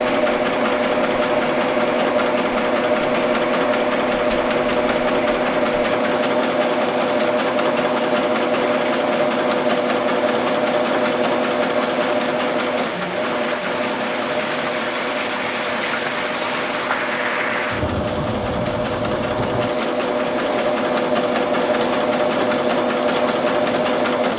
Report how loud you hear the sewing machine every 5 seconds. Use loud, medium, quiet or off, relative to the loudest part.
loud, loud, loud, medium, loud.